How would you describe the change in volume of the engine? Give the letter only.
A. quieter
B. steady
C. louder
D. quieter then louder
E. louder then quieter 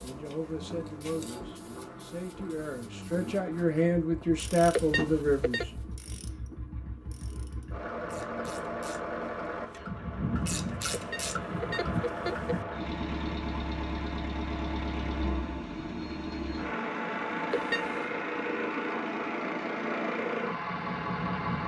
C.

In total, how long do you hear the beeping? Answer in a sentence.
The beeping can be heard for 3 seconds in total.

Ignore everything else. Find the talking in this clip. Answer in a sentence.
You can hear the talking from 0.0 to 5.7 s.